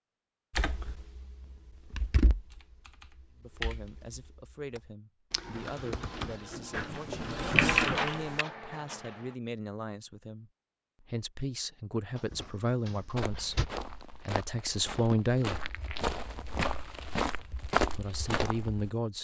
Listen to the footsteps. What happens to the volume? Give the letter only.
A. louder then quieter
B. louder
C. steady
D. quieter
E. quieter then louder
B.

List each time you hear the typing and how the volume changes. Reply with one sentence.
The typing can be heard from 0.5 to 8.4 s, getting quieter then louder.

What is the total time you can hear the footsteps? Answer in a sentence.
The footsteps can be heard for 6 seconds in total.